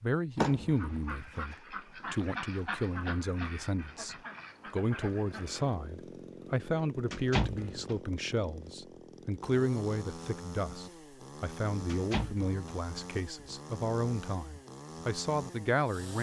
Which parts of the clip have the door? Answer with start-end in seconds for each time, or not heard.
0.3-1.3, 7.1-8.0, 11.8-12.8.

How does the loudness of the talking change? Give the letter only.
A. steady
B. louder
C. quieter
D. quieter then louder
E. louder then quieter
A.